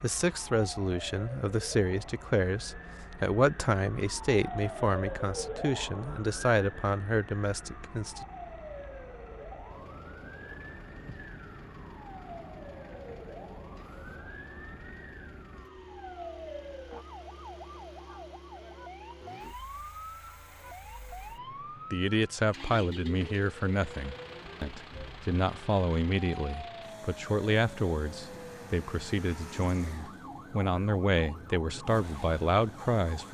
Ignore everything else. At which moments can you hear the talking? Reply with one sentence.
The talking can be heard from 0.0 to 8.2 s and from 21.9 to 33.2 s.